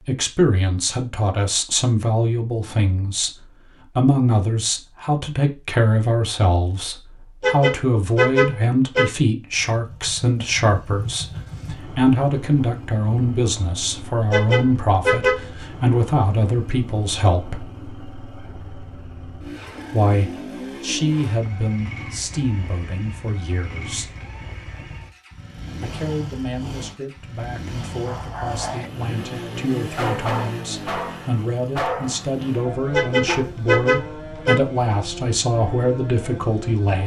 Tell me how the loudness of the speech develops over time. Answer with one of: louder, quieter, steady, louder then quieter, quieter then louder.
quieter then louder.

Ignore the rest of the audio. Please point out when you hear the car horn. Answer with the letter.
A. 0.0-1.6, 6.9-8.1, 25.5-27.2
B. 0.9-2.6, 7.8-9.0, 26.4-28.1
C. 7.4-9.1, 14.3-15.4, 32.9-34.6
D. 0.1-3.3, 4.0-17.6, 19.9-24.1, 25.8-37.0
C.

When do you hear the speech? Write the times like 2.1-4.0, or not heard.
0.1-3.3, 4.0-17.6, 19.9-24.1, 25.8-37.0.